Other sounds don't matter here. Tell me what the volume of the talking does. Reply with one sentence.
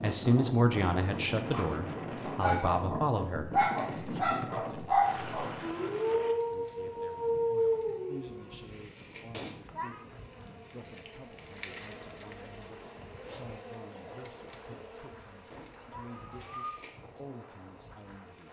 The loudness of the talking goes down.